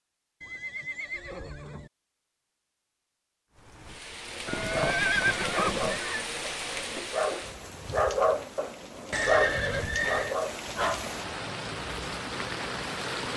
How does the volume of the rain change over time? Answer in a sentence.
The volume of the rain goes down, then up.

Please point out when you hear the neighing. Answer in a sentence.
The neighing can be heard from 0.4 to 1.9 s, from 4.5 to 6.2 s and from 9.1 to 10.3 s.